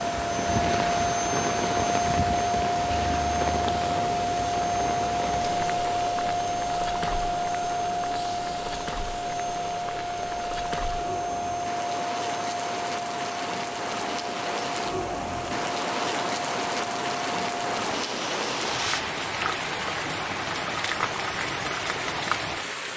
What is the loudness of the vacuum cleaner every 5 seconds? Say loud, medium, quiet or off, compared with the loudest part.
loud, loud, medium, medium, off.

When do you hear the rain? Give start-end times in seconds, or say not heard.
0.0-22.9.